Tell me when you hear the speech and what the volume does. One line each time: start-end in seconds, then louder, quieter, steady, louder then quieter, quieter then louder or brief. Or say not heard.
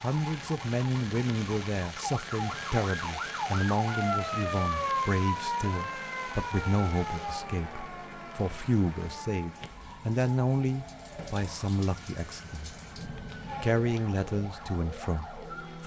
0.0-15.8 steady.